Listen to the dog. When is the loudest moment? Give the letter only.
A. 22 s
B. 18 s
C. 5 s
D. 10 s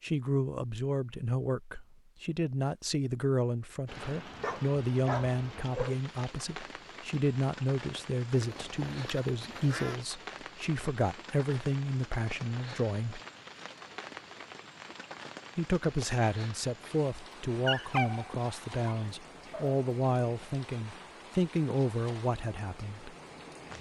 B.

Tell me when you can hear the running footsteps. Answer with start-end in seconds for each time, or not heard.
not heard.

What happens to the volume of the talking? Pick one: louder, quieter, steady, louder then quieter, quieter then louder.
steady.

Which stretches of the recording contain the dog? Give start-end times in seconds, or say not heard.
4.4-6.0, 17.3-19.8.